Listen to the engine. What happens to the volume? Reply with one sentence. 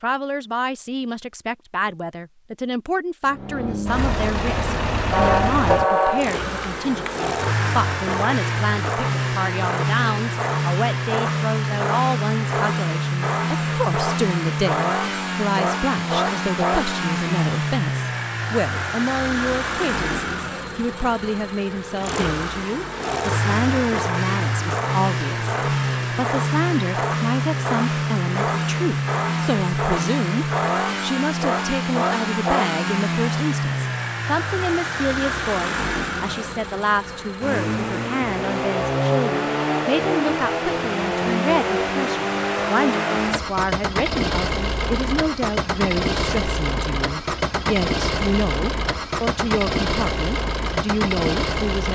The volume of the engine stays about the same.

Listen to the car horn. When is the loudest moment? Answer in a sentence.
The volume of the car horn peaks at 6 seconds.